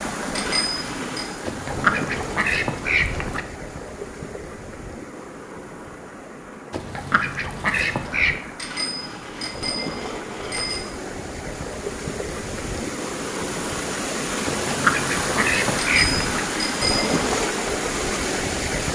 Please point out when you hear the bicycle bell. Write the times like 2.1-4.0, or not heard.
0.3-1.2, 8.6-10.8, 15.8-17.1.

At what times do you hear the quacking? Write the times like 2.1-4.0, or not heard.
1.4-3.4, 6.7-8.3, 14.4-16.4.